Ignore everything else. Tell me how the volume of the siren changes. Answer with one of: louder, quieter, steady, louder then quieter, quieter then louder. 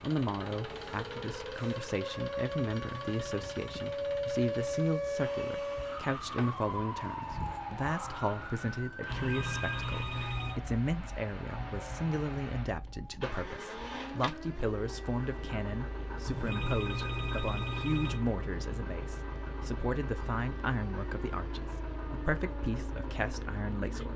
quieter.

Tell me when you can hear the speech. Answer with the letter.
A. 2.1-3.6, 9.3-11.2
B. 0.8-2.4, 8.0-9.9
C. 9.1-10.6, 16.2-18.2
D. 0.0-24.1
D.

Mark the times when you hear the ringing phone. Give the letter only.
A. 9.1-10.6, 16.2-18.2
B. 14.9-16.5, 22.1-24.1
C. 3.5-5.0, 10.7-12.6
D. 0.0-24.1
A.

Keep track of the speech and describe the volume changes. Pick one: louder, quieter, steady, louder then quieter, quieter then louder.
steady.